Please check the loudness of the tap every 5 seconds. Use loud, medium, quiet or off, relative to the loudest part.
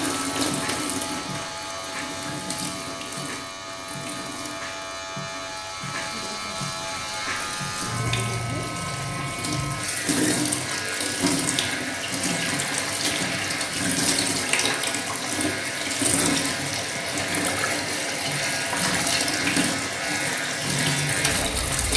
medium, medium, loud, loud, loud.